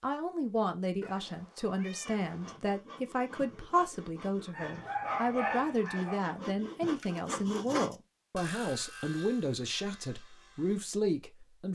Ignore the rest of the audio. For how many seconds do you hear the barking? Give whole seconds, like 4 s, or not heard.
2 s.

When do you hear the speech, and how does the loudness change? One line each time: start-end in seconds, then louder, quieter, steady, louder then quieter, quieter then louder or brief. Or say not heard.
0.0-11.6 steady.